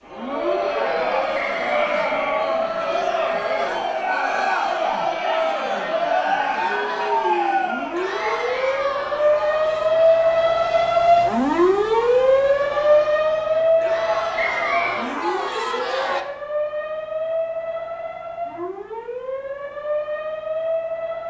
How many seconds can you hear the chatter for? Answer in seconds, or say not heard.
16 s.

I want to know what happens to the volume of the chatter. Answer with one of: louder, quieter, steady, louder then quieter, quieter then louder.
quieter then louder.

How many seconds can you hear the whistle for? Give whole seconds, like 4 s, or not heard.
3 s.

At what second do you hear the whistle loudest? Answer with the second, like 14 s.
15 s.